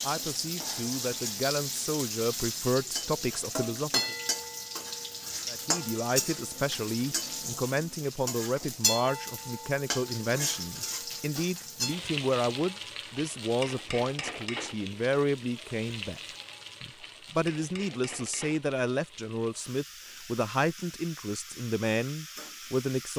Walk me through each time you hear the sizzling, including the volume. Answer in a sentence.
You can hear the sizzling from 0.0 to 23.1 s, getting quieter.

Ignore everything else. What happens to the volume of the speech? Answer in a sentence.
The volume of the speech stays about the same.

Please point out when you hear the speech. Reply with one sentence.
The speech can be heard from 0.0 to 4.2 s, from 5.5 to 16.2 s and from 16.8 to 23.1 s.